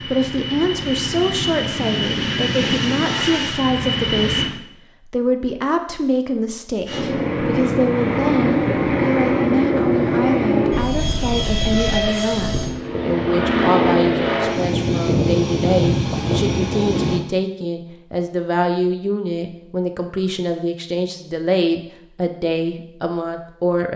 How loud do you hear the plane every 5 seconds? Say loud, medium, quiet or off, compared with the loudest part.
loud, loud, loud, loud, off.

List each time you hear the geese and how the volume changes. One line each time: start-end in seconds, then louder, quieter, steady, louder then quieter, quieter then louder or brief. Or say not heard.
not heard.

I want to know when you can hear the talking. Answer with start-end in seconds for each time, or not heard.
0.1-23.9.